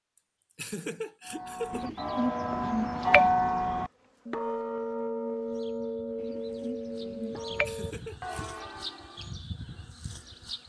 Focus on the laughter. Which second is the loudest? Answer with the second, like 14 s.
1 s.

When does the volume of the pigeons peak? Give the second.
3 s.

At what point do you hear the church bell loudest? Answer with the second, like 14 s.
3 s.